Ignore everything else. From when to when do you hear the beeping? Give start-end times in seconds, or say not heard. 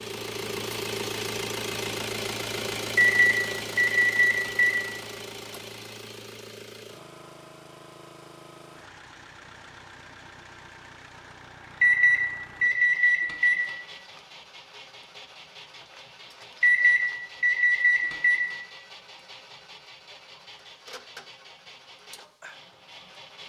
3.0-4.8, 11.8-13.6, 16.6-18.4.